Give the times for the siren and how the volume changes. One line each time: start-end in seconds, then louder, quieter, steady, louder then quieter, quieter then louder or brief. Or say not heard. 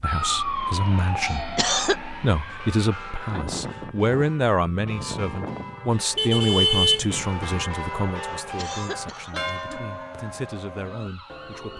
0.0-11.7 quieter.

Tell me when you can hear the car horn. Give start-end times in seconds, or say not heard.
6.2-7.7.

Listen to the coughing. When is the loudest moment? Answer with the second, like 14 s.
2 s.